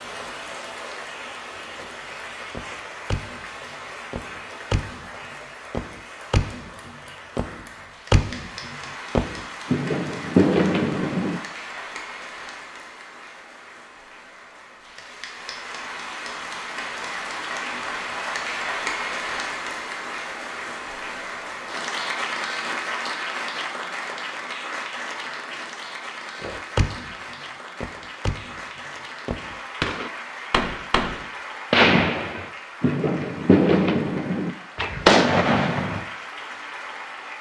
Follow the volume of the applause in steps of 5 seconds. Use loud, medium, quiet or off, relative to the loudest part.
medium, medium, medium, loud, loud, medium, medium, medium.